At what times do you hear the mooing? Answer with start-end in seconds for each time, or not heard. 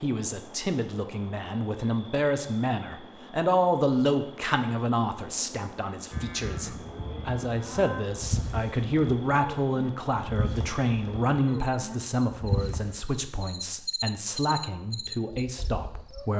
6.1-13.0.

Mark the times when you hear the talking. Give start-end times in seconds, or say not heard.
0.0-16.3.